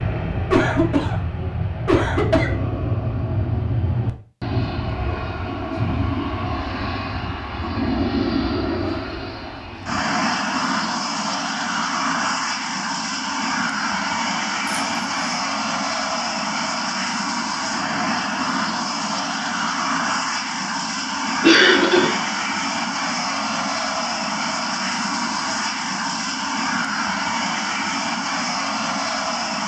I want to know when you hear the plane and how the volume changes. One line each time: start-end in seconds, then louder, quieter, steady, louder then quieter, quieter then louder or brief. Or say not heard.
0.0-29.6 steady.